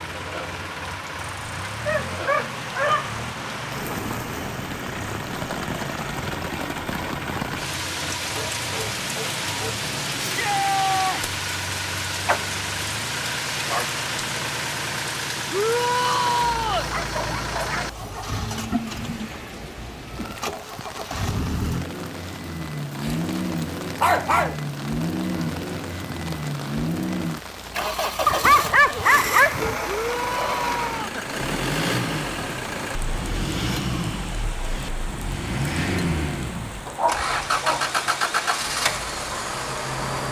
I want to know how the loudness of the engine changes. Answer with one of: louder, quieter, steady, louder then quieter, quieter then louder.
louder.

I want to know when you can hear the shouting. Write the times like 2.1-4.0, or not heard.
10.2-11.2, 15.5-16.9, 29.9-31.1.